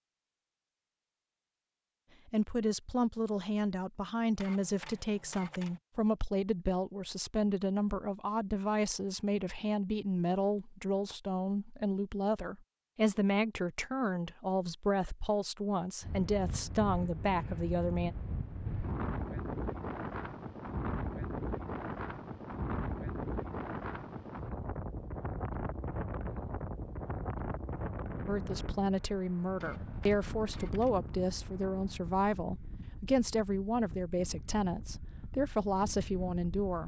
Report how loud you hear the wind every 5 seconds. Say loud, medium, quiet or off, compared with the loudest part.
off, off, off, loud, loud, loud, medium, medium.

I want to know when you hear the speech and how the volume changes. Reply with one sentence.
The speech can be heard from 2.2 to 18.1 s, at a steady volume; and from 28.2 to 36.8 s, at a steady volume.